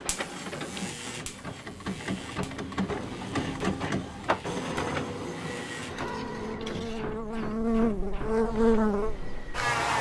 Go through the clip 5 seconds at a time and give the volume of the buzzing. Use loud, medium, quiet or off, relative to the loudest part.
quiet, loud.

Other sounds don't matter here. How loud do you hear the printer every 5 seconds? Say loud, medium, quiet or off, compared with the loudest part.
loud, medium.